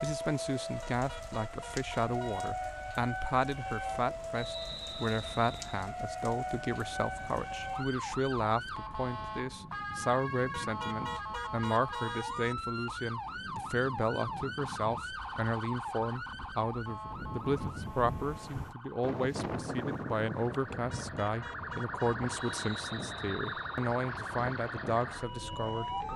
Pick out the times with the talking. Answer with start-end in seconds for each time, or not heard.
0.0-25.9.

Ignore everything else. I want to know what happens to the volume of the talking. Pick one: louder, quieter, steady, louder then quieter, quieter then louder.
steady.